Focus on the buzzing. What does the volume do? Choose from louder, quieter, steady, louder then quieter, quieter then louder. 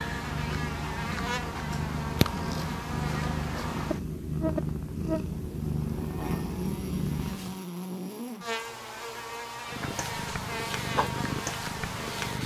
steady.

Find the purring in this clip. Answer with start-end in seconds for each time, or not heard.
0.0-7.6, 9.7-12.4.